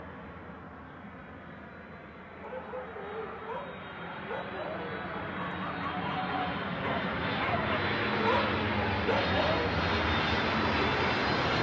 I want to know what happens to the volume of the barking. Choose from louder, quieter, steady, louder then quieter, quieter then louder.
louder.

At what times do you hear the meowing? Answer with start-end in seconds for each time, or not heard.
not heard.